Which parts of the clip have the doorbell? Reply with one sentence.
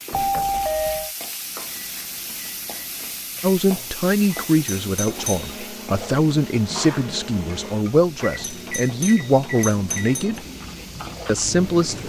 You can hear the doorbell from 0.1 to 1.1 s, from 4.7 to 5.5 s and from 8.4 to 10.4 s.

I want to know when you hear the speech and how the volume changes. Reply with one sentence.
The speech can be heard from 3.4 to 10.4 s, at a steady volume; and briefly from 11.2 to 12.0 s.